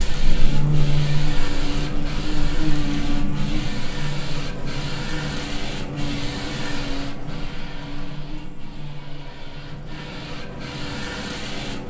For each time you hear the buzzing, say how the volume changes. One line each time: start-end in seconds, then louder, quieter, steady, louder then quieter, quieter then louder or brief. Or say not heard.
0.0-11.8 quieter.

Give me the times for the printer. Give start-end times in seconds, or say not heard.
0.0-11.8.